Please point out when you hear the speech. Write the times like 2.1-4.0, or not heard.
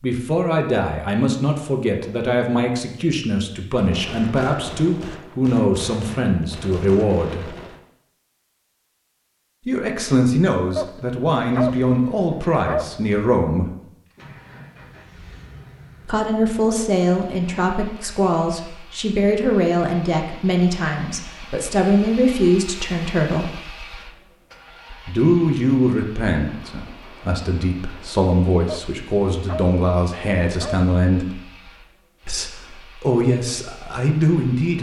0.0-7.5, 9.7-13.7, 16.1-23.5, 25.1-31.4, 32.2-34.7.